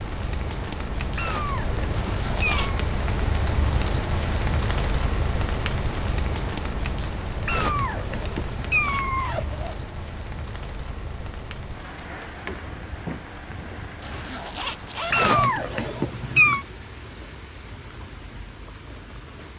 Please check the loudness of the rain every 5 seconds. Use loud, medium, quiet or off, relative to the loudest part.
loud, loud, medium, quiet.